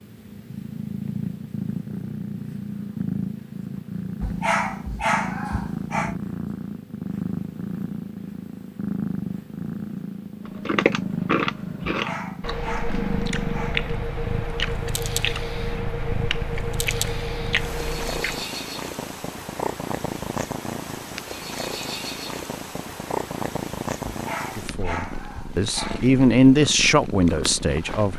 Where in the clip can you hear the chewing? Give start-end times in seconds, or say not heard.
10.4-18.4.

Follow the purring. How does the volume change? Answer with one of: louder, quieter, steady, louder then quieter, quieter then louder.
steady.